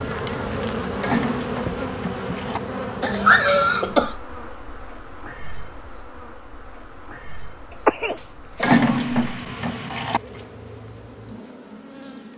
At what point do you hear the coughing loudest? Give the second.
3 s.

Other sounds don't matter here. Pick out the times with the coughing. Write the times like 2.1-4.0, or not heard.
3.0-4.2, 7.8-8.7.